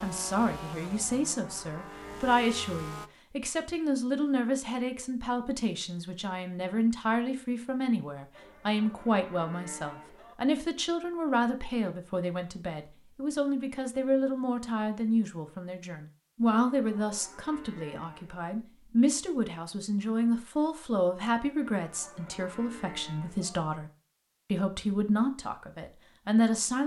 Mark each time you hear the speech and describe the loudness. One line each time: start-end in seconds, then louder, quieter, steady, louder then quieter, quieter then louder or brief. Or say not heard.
0.0-23.9 steady
24.5-26.8 brief.